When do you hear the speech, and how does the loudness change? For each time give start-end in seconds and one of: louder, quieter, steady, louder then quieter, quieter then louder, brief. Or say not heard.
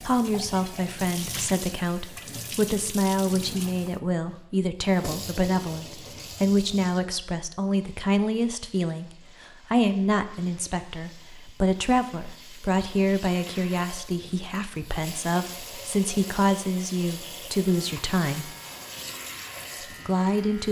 0.0-18.6 steady
20.1-20.6 brief.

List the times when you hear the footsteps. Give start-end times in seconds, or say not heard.
not heard.